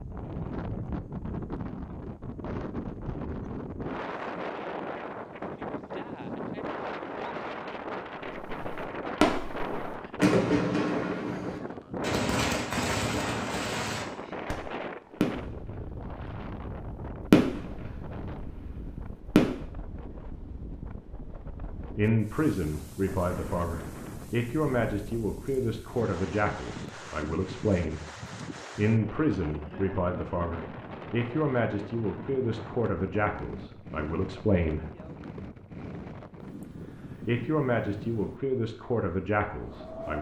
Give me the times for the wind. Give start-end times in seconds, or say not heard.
0.0-40.1.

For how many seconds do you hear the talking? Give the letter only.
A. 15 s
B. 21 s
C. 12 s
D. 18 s
A.